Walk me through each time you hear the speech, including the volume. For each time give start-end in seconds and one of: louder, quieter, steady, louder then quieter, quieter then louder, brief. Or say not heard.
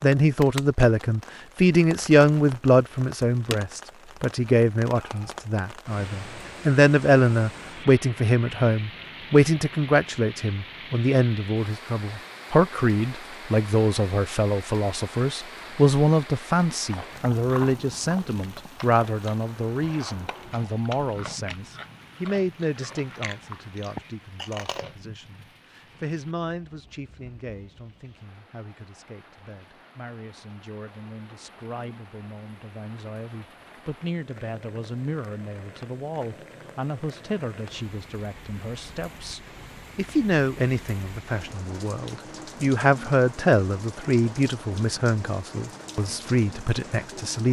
0.0-47.4 quieter then louder.